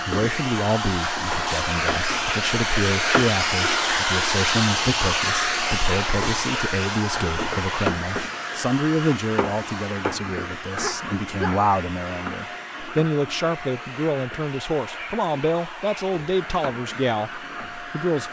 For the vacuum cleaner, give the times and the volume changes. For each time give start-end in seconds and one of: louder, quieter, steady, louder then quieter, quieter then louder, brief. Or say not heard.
0.0-18.2 quieter.